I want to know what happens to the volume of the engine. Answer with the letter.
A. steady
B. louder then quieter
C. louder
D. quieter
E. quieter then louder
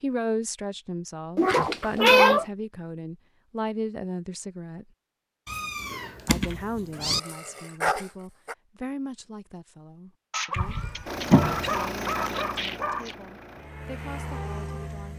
E.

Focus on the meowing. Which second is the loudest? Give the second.
2 s.